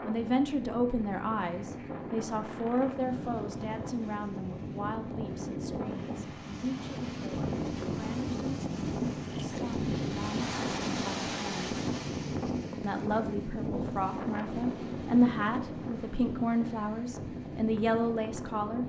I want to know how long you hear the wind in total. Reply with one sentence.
You can hear the wind for 19 seconds altogether.